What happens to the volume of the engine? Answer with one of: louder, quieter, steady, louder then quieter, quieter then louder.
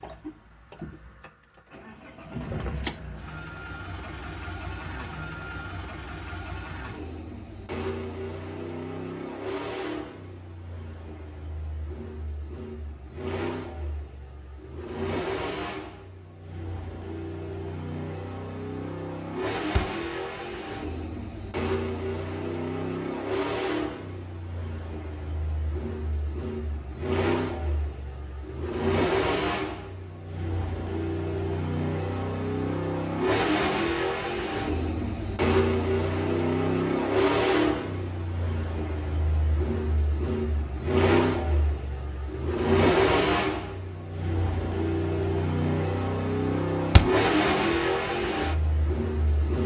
louder.